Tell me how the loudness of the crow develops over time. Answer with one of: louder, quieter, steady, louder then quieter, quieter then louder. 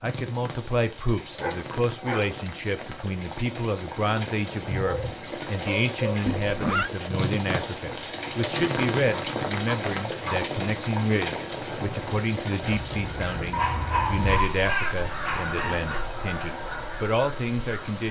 louder then quieter.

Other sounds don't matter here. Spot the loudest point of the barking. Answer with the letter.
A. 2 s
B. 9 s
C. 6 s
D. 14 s
D.